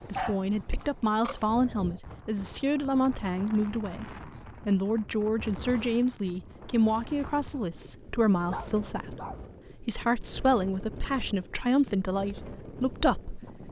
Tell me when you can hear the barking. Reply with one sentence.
The barking can be heard from 0.1 to 1.4 s and from 8.5 to 9.5 s.